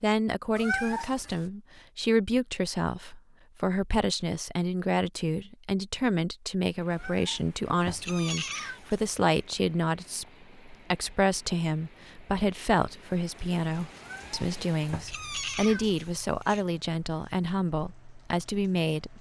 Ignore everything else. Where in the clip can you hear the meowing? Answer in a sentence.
The meowing can be heard from 0.6 to 1.5 s, from 6.9 to 9.1 s and from 13.9 to 16.6 s.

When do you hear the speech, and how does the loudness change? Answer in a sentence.
The speech can be heard from 0.0 to 19.1 s, at a steady volume.